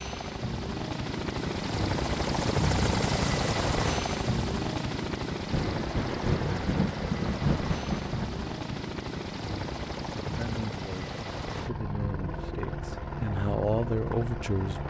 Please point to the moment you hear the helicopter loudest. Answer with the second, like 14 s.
3 s.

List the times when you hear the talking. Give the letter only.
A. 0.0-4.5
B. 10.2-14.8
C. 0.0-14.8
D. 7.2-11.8
B.